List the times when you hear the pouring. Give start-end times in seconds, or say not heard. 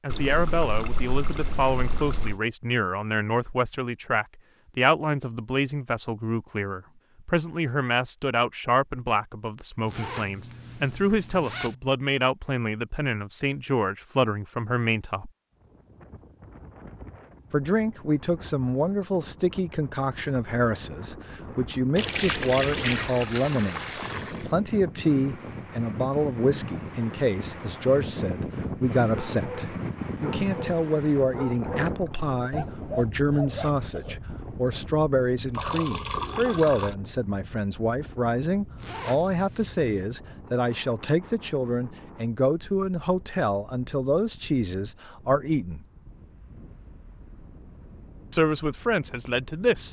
0.1-2.4, 21.9-24.4, 35.5-37.0.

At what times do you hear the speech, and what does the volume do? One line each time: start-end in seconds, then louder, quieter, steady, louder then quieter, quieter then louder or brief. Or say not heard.
0.0-15.3 steady
17.5-45.9 steady
48.3-49.8 brief.